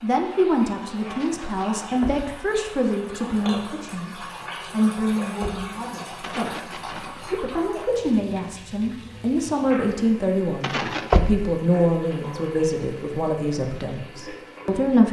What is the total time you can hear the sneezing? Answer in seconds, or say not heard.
3 s.